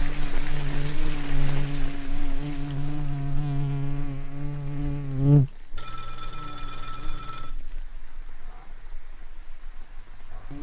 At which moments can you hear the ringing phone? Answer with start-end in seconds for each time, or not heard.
5.8-7.5.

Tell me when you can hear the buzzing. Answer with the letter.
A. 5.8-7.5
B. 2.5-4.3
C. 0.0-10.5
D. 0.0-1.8
C.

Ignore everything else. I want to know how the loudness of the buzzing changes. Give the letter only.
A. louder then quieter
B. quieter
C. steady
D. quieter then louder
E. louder
A.